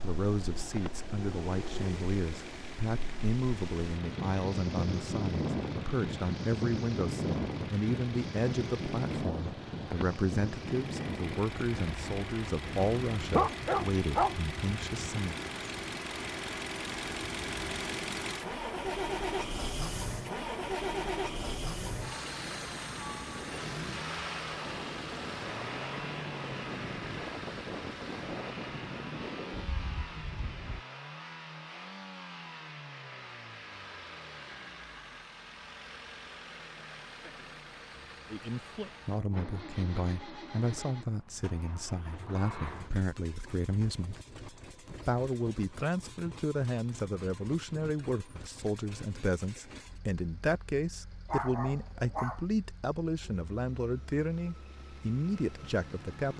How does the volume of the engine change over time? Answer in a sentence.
The volume of the engine goes up, then down.